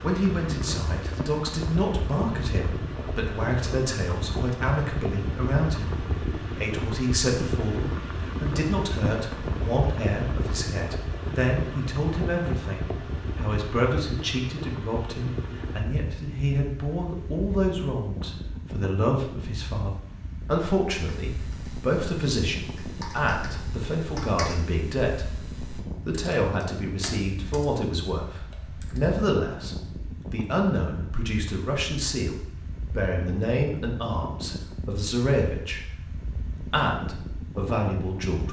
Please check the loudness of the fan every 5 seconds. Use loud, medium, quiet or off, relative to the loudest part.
loud, loud, loud, medium, medium, medium, medium, medium.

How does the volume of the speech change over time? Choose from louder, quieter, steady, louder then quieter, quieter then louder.
steady.